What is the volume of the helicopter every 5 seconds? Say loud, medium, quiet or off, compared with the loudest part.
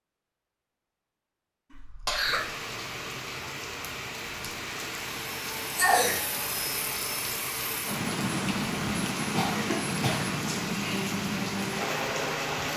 off, loud, loud.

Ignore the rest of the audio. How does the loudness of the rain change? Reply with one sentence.
The loudness of the rain stays about the same.